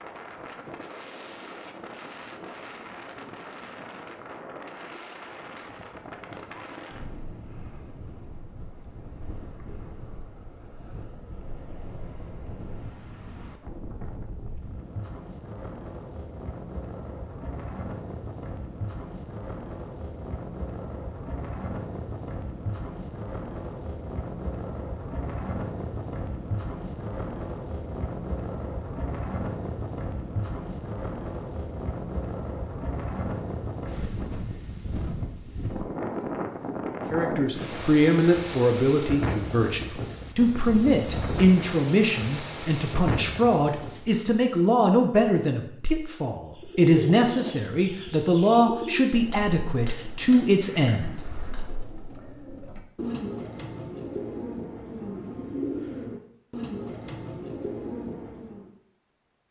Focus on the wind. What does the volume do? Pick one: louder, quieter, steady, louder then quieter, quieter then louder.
louder.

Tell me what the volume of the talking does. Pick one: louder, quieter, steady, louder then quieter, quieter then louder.
steady.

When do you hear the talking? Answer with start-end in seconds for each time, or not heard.
37.1-51.1.